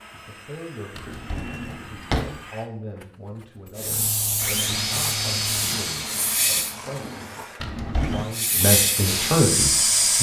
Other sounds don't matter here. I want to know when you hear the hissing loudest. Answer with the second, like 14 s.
10 s.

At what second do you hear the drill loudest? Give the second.
5 s.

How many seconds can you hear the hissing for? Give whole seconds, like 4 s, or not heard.
5 s.